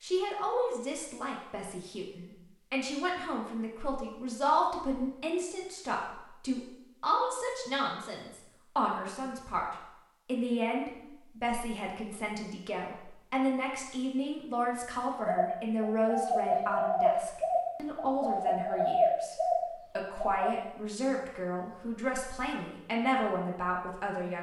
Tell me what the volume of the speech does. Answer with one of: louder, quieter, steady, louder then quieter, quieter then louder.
steady.